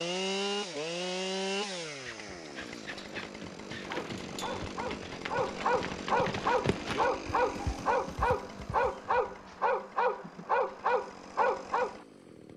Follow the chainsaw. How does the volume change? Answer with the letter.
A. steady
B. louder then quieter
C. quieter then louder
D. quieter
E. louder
D.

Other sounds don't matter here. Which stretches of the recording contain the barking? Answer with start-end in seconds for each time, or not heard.
3.5-12.1.